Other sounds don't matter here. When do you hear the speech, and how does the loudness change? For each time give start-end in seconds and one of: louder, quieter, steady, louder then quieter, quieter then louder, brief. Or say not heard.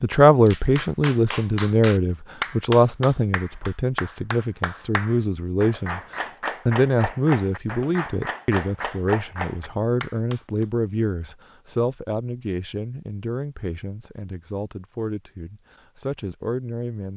0.0-17.1 quieter.